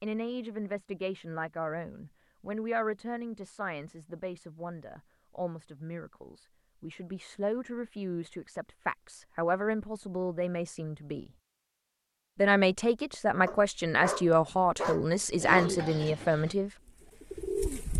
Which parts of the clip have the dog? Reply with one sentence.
The dog can be heard from 13.4 to 15.7 s.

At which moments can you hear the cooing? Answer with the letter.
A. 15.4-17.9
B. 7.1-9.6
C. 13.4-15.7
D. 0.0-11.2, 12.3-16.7
A.